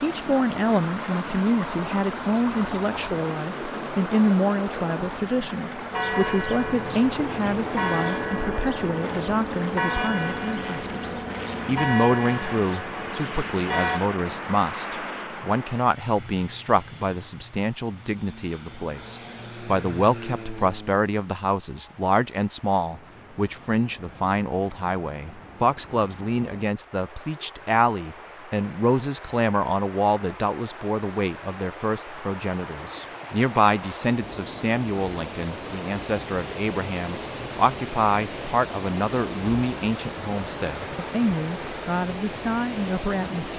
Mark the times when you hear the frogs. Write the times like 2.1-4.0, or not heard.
not heard.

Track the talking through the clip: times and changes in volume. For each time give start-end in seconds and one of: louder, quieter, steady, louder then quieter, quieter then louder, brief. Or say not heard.
0.0-43.5 steady.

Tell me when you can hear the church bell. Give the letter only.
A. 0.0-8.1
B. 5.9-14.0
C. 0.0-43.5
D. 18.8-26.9
B.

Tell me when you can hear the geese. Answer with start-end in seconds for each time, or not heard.
not heard.